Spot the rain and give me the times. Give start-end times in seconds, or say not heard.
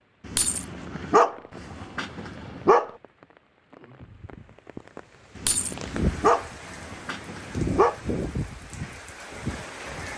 0.0-10.1.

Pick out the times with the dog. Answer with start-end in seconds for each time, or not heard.
0.2-2.9, 5.3-8.0.